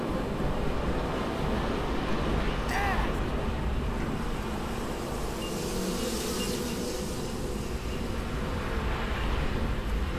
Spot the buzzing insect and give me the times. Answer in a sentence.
You can hear the buzzing insect from 0.0 to 10.1 s.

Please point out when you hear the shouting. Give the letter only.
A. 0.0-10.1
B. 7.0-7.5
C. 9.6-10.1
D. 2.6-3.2
D.